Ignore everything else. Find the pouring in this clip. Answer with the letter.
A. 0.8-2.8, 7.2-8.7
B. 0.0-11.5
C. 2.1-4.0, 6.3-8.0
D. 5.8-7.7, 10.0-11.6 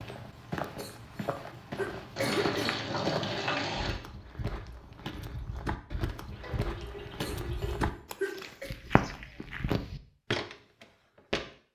C.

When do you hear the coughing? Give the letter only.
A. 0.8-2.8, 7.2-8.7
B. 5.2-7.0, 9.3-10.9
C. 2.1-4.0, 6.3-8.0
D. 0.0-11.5
A.